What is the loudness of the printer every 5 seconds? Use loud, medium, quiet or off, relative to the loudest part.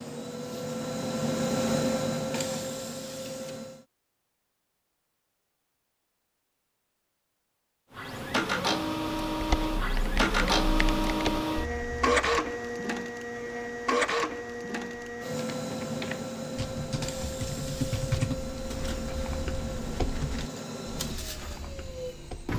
loud, loud, loud, medium, medium.